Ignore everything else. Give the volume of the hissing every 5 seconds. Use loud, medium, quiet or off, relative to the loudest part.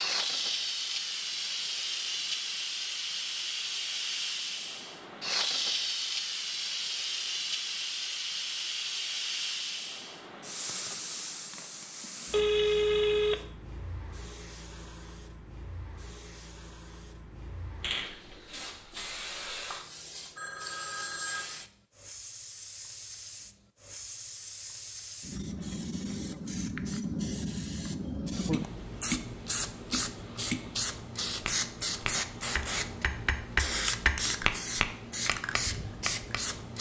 loud, loud, medium, medium, medium, loud, loud, loud.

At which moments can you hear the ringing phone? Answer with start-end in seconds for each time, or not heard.
12.3-13.4, 20.4-21.5.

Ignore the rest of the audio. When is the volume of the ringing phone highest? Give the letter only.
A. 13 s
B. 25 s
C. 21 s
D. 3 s
A.